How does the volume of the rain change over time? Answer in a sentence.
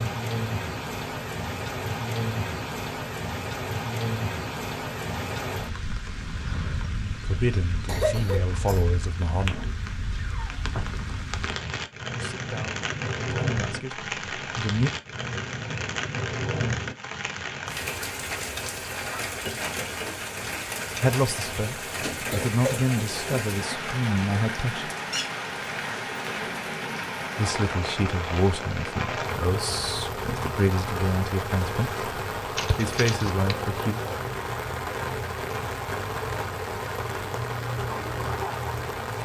The loudness of the rain stays about the same.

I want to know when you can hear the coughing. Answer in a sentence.
The coughing can be heard from 7.8 to 8.8 s, from 22.1 to 23.8 s and from 32.5 to 33.5 s.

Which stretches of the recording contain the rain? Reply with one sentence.
You can hear the rain from 0.0 to 39.2 s.